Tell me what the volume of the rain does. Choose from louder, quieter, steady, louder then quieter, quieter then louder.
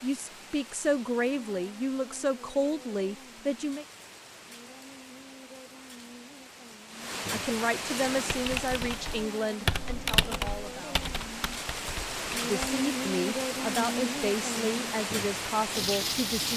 louder.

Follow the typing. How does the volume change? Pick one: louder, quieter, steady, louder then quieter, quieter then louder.
louder then quieter.